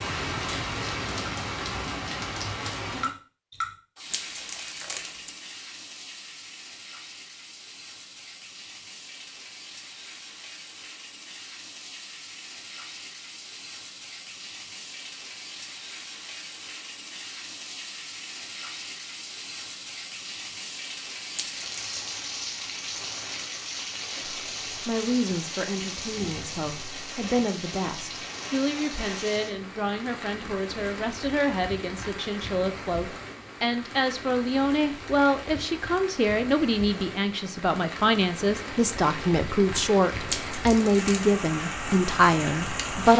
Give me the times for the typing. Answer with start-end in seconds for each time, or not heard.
not heard.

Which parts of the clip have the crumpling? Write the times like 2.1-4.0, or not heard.
4.1-5.3, 21.4-21.9, 40.2-41.2.